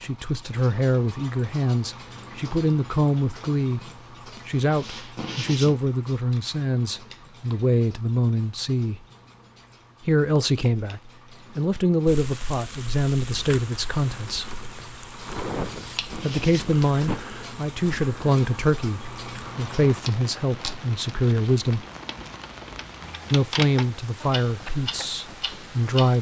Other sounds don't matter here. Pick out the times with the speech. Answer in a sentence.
You can hear the speech from 0.0 to 3.8 s, from 4.5 to 9.0 s, from 10.1 to 14.5 s, from 16.2 to 21.9 s and from 23.3 to 26.1 s.